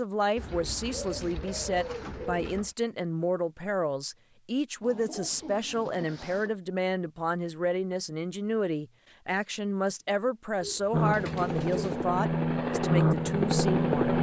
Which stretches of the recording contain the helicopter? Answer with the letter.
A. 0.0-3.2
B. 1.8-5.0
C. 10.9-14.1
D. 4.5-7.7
C.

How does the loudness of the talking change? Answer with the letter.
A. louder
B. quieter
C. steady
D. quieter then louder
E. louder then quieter
C.